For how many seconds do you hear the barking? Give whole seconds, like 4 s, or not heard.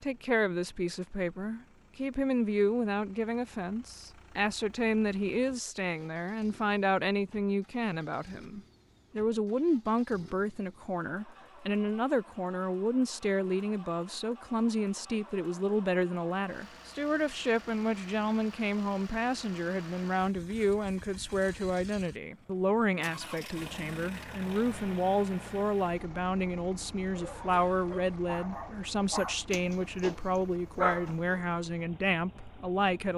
4 s.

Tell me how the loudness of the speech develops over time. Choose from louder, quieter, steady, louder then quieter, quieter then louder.
steady.